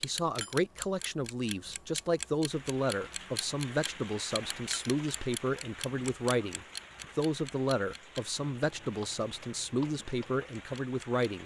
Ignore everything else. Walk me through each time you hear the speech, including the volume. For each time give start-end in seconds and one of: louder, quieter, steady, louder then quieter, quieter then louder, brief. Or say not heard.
0.0-11.4 steady.